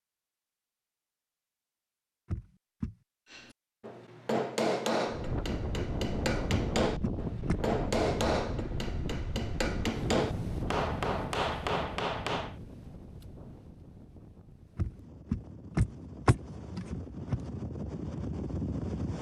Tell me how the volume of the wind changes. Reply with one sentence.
The volume of the wind goes down, then up.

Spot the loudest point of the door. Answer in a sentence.
The volume of the door peaks at 16 seconds.